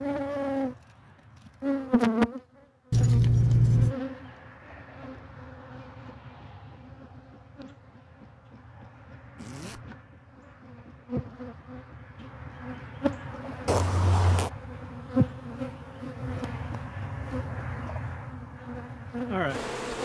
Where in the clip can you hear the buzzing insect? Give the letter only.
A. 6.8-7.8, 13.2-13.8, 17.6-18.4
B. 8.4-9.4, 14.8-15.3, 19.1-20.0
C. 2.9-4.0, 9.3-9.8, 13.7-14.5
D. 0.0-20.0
D.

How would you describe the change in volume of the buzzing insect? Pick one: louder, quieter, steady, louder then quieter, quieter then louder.
quieter then louder.